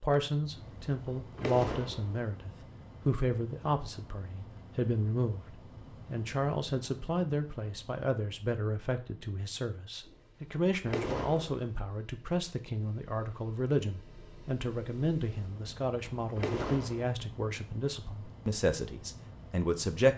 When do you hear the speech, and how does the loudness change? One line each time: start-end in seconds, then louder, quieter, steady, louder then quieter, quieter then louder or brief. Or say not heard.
0.0-20.1 steady.